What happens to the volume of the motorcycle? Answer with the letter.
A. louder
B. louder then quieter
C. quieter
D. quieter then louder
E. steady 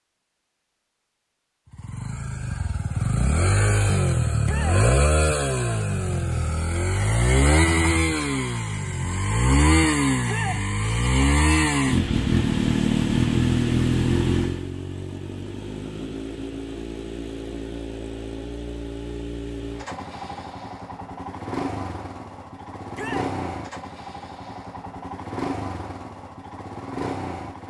C.